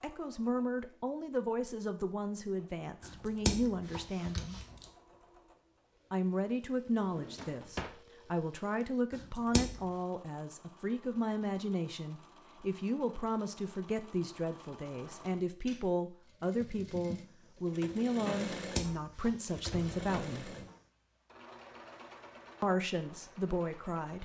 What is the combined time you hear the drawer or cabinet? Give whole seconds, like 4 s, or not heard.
2 s.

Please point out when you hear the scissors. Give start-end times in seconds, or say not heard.
3.2-4.8, 9.3-9.8, 18.6-19.9.